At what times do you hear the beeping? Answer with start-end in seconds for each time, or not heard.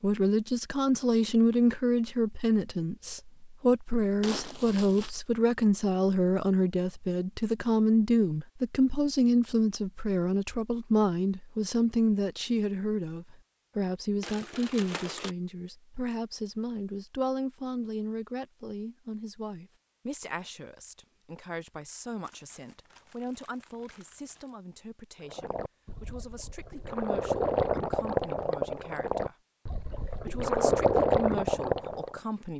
not heard.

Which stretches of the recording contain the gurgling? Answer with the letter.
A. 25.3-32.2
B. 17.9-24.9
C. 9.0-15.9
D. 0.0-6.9
A.